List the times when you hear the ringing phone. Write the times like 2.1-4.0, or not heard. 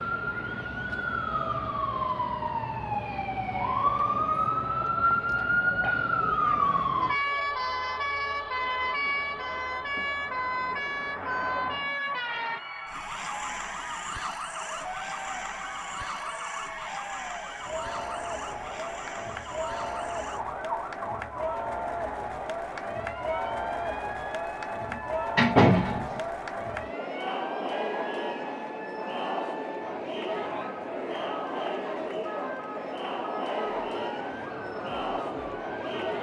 not heard.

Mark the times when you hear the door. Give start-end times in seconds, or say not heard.
24.9-26.2.